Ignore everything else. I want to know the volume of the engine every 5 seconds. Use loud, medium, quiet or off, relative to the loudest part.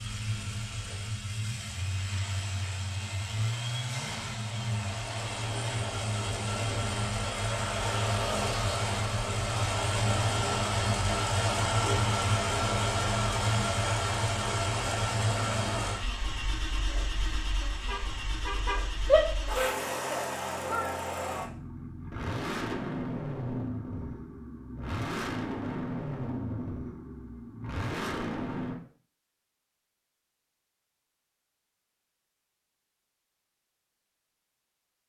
medium, loud, loud, medium, medium, medium, off.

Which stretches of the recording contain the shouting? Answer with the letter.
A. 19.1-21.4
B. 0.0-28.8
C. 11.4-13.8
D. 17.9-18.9
A.